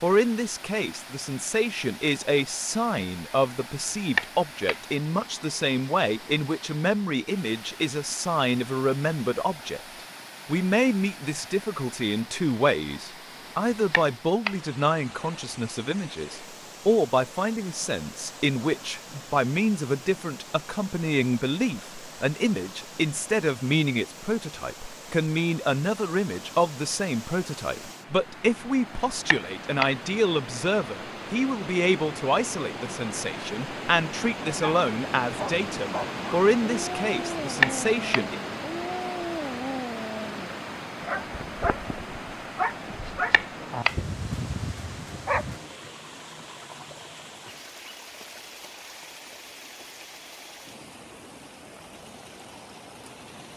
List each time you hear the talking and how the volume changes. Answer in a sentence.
You can hear the talking from 0.0 to 9.8 s, at a steady volume; and from 10.4 to 38.4 s, at a steady volume.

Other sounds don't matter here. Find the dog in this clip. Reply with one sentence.
You can hear the dog from 34.6 to 45.6 s.